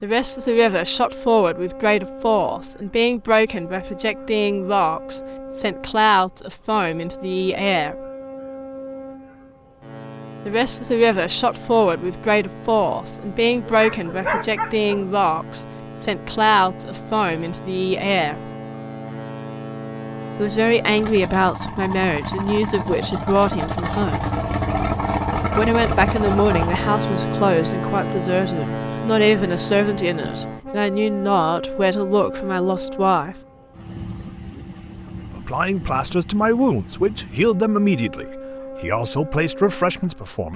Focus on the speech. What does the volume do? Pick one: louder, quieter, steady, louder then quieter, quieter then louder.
steady.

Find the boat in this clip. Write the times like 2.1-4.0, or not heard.
0.0-40.5.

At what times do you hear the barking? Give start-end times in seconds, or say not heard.
13.7-15.1.